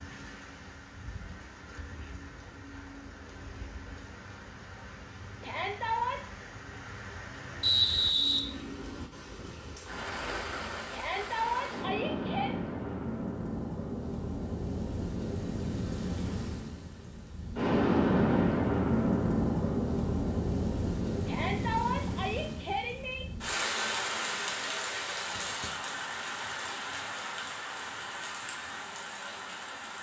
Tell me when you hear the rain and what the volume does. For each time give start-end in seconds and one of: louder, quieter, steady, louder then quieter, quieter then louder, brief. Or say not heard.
0.0-29.9 louder then quieter.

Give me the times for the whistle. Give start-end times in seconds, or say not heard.
7.6-8.4.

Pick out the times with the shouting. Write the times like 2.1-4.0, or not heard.
5.4-6.2, 10.9-12.6, 21.2-23.2.